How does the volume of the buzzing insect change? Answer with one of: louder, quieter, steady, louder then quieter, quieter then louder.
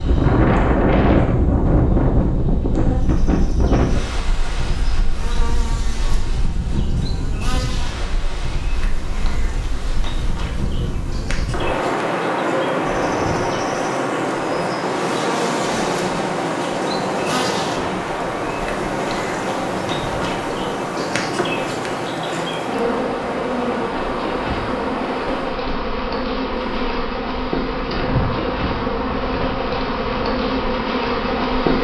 louder.